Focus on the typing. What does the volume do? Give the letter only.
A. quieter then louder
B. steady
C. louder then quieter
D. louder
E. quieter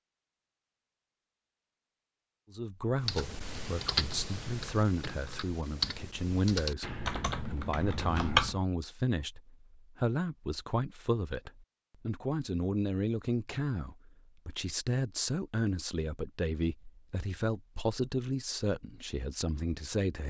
A.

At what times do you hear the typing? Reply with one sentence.
You can hear the typing from 3.0 to 8.6 s.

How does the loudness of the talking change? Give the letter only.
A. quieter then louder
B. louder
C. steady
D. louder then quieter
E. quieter
C.